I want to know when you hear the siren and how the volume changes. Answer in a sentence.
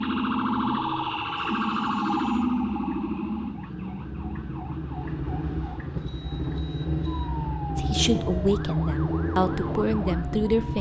The siren can be heard from 0.0 to 10.7 s, getting quieter.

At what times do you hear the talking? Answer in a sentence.
The talking can be heard from 7.8 to 10.7 s.